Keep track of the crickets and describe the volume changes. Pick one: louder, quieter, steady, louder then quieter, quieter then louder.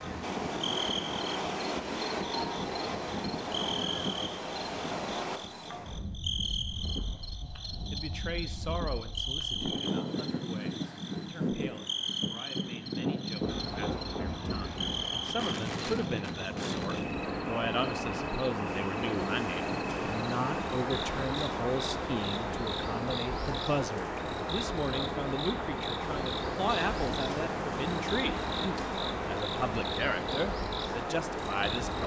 steady.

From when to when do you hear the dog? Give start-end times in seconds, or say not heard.
not heard.